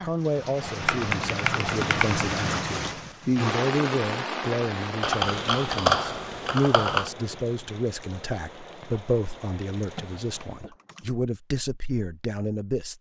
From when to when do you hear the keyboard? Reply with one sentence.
You can hear the keyboard from 0.8 to 2.2 s, from 5.0 to 7.1 s and from 9.5 to 11.2 s.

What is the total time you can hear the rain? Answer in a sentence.
You can hear the rain for 11 seconds altogether.